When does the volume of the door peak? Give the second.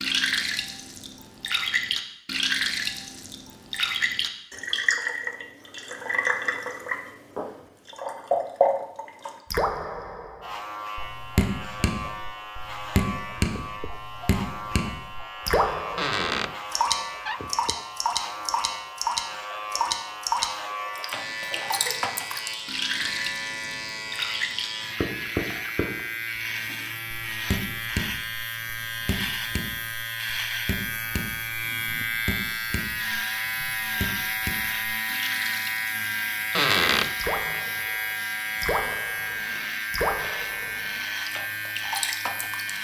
37 s.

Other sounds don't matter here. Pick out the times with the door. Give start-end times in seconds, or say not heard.
15.9-17.8, 36.5-37.6.